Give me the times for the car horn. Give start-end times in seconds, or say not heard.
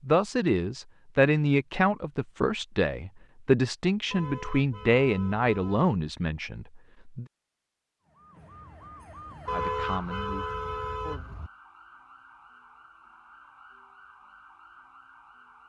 4.1-5.9, 9.4-11.5.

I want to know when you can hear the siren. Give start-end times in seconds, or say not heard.
8.0-15.6.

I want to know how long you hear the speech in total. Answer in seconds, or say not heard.
9 s.